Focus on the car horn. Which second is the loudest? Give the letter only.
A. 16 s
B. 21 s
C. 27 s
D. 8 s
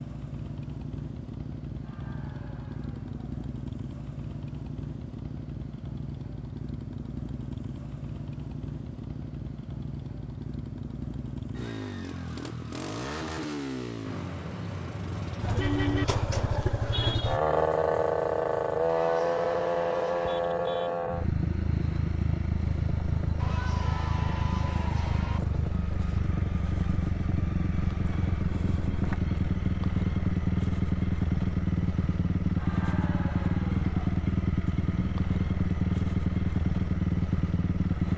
A.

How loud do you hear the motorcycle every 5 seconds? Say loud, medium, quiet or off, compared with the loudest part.
medium, medium, medium, loud, loud, loud, loud, loud.